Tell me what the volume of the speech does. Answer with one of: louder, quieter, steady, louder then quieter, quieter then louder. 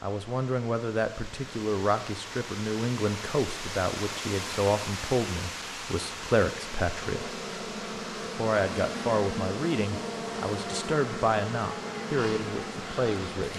steady.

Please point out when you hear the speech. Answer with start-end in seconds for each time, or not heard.
0.0-7.3, 8.2-13.5.